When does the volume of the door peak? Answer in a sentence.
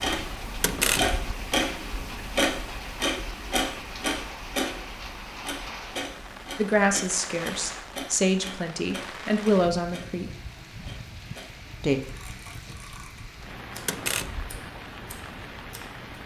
The volume of the door peaks at 1 second.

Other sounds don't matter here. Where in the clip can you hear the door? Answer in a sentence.
The door can be heard from 0.6 to 1.2 s and from 13.8 to 14.6 s.